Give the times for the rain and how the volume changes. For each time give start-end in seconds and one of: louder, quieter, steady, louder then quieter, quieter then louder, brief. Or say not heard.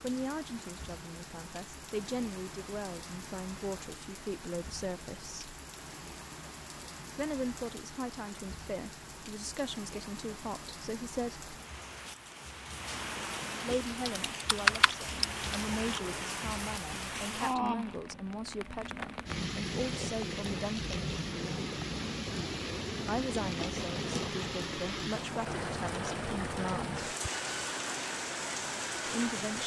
0.0-29.6 louder.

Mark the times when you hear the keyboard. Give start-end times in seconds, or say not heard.
14.1-15.4.